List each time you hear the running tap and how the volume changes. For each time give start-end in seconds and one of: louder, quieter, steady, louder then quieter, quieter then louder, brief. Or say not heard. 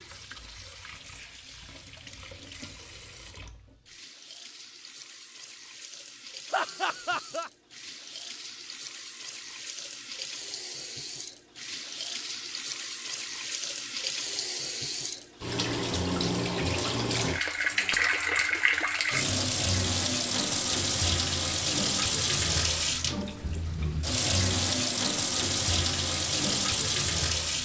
0.0-27.6 louder.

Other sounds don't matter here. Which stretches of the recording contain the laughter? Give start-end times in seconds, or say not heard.
6.5-7.5.